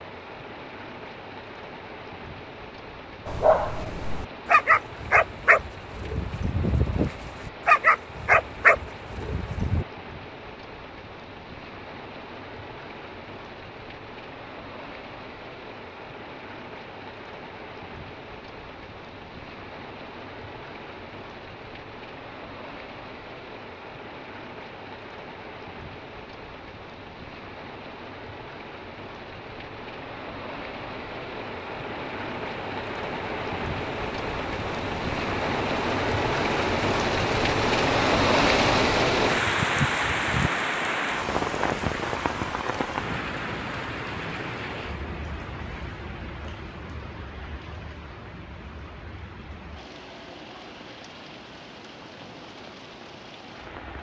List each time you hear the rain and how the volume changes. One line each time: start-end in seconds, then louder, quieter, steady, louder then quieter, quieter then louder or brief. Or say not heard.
0.0-53.9 louder then quieter.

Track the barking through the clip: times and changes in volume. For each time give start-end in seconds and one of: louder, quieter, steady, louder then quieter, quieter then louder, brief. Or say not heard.
3.2-9.8 quieter then louder.